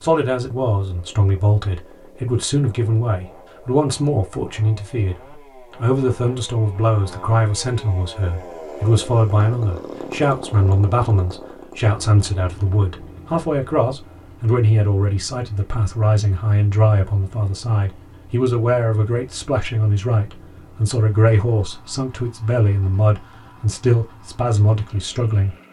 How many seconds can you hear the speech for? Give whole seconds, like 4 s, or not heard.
25 s.